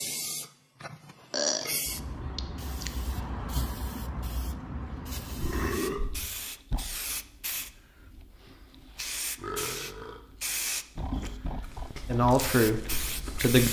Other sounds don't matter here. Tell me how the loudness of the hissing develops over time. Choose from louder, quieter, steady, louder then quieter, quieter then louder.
steady.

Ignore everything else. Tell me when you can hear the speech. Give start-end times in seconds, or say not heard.
12.1-13.6.